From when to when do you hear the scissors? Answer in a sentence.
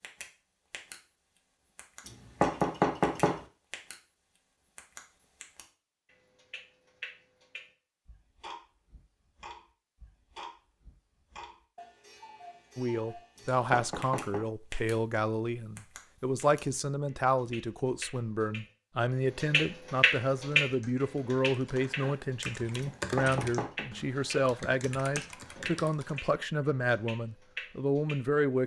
You can't hear the scissors here.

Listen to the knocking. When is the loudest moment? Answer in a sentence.
The loudest moment of the knocking is at 3 seconds.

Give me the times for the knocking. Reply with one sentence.
The knocking can be heard from 2.0 to 3.4 s, from 13.3 to 14.4 s and from 22.8 to 23.9 s.